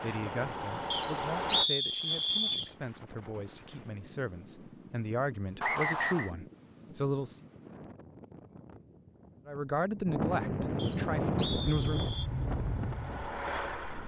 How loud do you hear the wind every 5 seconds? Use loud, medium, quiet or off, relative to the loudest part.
quiet, quiet, loud.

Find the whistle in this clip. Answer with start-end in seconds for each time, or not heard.
0.9-2.7, 5.6-6.3, 10.8-12.3.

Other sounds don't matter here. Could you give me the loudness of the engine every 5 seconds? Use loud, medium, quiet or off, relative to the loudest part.
loud, off, medium.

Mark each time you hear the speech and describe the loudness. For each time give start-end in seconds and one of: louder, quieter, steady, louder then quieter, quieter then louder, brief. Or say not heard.
0.0-7.4 louder
9.4-12.1 brief.